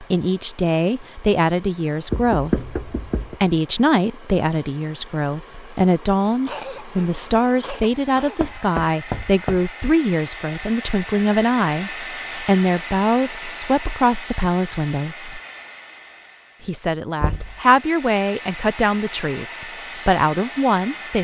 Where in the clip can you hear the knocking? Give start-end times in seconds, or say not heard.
2.1-3.4, 8.4-9.7, 17.2-17.6.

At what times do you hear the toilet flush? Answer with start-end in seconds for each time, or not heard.
not heard.